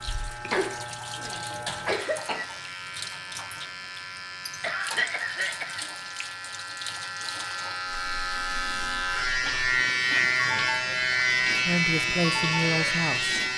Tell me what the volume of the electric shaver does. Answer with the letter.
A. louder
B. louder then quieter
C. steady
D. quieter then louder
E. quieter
A.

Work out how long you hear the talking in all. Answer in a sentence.
You can hear the talking for 2 seconds altogether.